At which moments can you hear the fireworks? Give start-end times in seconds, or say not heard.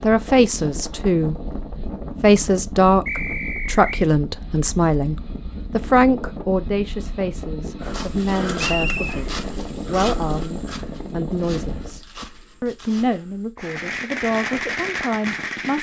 13.6-15.7.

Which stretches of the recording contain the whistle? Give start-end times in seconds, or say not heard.
3.0-4.0, 8.6-9.2.